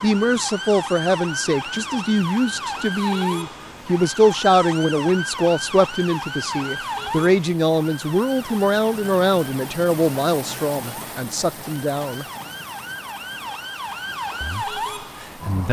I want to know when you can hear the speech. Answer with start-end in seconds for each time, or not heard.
0.0-12.2, 14.4-15.6.